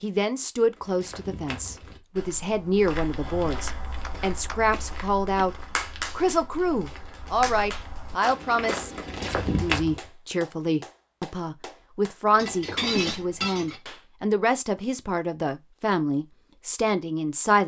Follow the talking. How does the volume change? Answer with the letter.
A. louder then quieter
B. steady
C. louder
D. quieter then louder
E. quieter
B.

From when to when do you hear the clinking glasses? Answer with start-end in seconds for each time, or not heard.
12.3-13.8.